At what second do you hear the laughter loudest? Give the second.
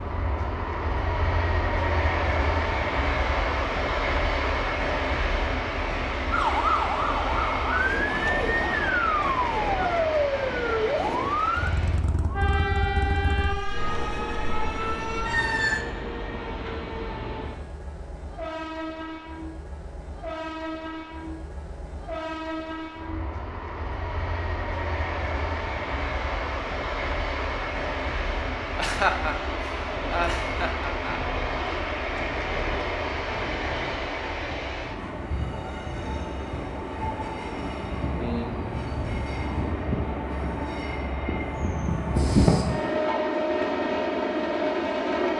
29 s.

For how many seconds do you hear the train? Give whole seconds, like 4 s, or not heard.
45 s.